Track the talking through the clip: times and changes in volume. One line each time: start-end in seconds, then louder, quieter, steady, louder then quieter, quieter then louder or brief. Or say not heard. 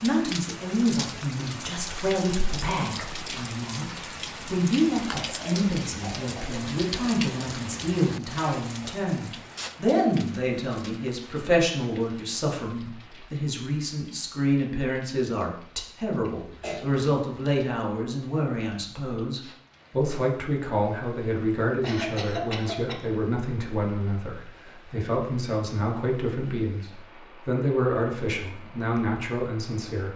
0.0-30.1 steady.